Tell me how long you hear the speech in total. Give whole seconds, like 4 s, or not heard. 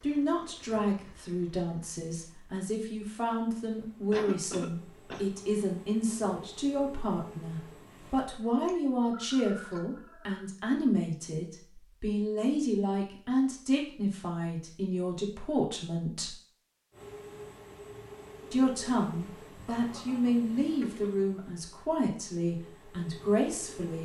22 s.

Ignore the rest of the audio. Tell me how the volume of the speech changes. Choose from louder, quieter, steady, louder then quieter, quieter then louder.
steady.